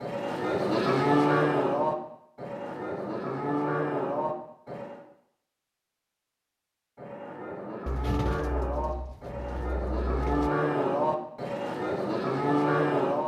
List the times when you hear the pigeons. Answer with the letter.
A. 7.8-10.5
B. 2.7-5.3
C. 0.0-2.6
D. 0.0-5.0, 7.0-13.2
A.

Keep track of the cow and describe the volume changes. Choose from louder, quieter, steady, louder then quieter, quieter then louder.
quieter then louder.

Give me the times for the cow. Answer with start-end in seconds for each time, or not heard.
0.0-5.0, 7.0-13.2.